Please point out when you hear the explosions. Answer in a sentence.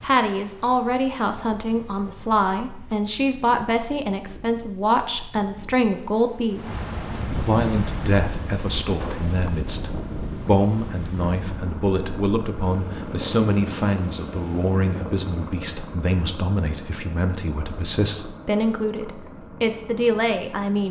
The explosions can be heard from 9.0 to 9.4 s.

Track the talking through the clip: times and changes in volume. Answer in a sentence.
The talking can be heard from 0.0 to 20.8 s, at a steady volume.